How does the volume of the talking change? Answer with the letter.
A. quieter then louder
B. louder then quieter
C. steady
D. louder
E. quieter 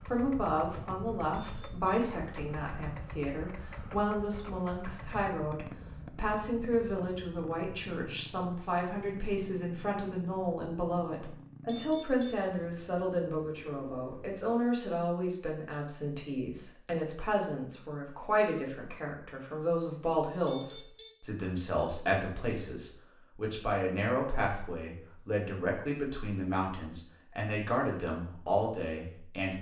C.